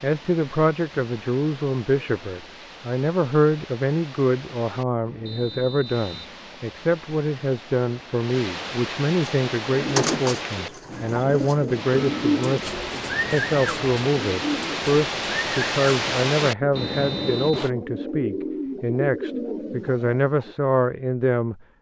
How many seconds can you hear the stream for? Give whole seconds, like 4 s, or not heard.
18 s.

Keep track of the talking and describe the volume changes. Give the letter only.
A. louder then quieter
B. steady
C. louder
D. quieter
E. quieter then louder
B.